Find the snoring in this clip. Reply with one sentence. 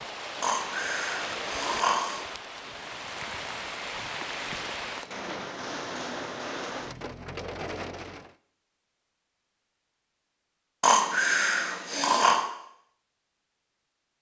You can hear the snoring from 0.4 to 2.2 s and from 10.8 to 12.4 s.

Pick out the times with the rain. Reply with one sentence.
You can hear the rain from 0.0 to 8.3 s.